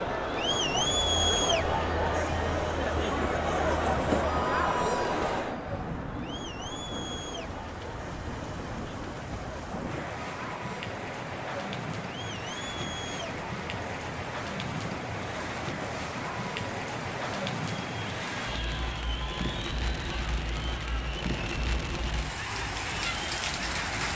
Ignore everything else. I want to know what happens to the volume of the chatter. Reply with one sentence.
The volume of the chatter goes down.